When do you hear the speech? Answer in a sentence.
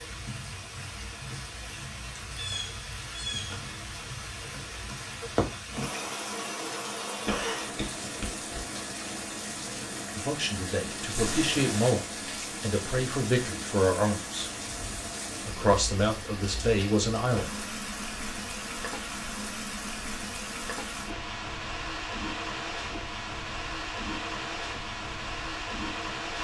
The speech can be heard from 10.2 to 14.5 s and from 15.4 to 17.6 s.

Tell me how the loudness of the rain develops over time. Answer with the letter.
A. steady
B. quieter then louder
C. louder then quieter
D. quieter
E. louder
A.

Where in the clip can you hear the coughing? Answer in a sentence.
You can hear the coughing from 7.2 to 8.4 s.